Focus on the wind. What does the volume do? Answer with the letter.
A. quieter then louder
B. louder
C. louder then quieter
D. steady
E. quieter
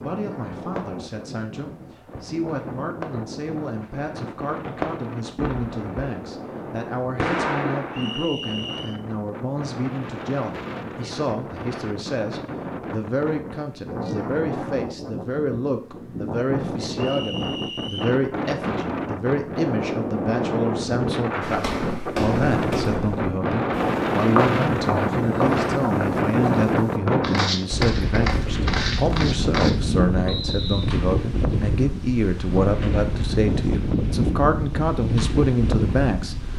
B.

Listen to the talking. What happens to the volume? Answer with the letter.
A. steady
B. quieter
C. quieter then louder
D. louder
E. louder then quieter
D.